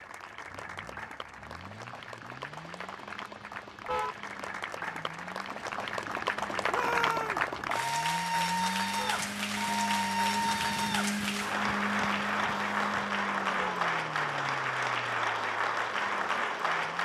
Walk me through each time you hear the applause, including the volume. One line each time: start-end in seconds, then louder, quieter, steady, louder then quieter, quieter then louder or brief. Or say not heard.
0.0-17.0 louder.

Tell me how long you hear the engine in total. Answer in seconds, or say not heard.
17 s.